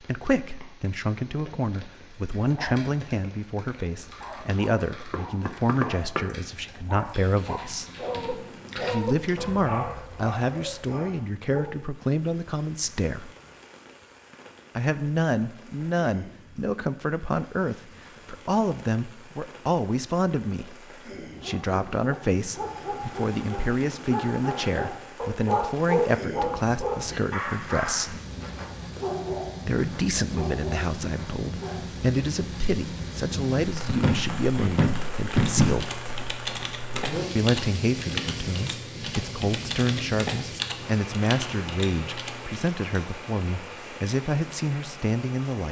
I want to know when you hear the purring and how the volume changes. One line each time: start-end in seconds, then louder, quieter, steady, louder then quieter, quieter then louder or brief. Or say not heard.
not heard.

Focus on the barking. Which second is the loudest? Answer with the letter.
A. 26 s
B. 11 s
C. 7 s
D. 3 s
A.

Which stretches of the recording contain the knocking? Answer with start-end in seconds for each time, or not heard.
5.1-6.2, 33.9-35.8.